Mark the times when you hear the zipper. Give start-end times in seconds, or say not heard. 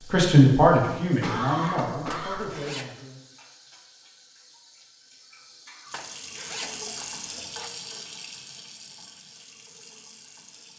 2.1-3.1, 5.9-7.7.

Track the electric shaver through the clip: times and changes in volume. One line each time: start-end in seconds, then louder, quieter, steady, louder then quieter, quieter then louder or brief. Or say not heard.
not heard.